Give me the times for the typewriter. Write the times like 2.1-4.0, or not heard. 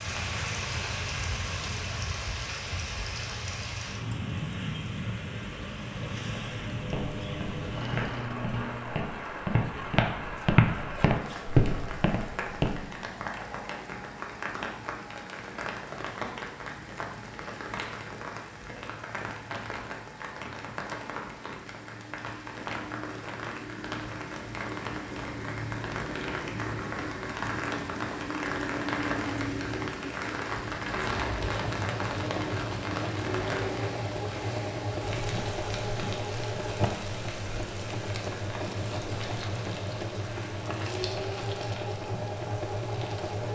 not heard.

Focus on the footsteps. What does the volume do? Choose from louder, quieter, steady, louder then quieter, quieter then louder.
louder.